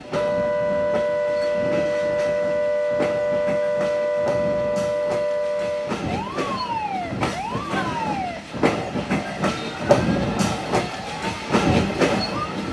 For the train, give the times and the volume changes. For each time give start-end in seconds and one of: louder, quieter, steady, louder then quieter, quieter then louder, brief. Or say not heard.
0.0-12.6 louder.